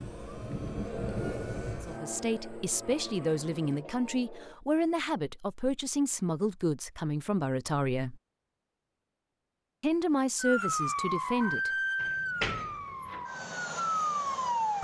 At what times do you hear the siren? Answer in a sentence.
The siren can be heard from 0.0 to 4.6 s and from 10.3 to 14.8 s.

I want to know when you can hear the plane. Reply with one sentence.
The plane can be heard from 0.0 to 3.9 s.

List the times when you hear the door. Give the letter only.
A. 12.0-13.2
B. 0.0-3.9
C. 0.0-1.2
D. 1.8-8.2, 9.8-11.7
A.